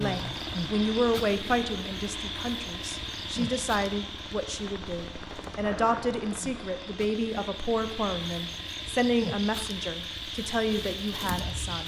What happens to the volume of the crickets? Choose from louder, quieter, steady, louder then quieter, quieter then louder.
quieter then louder.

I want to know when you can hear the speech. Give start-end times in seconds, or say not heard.
0.0-11.8.